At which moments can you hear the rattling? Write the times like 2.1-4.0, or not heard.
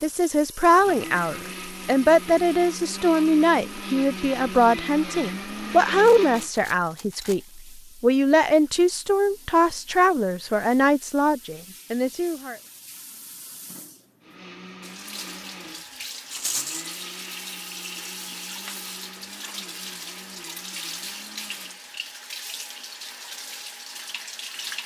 6.2-7.3, 16.3-16.9.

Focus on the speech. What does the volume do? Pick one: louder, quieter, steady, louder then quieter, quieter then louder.
steady.